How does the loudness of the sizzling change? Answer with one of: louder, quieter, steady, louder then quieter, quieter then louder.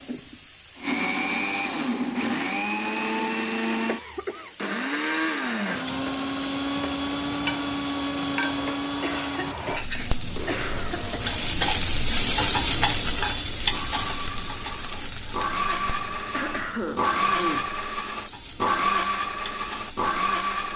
louder then quieter.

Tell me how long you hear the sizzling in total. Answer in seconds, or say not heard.
21 s.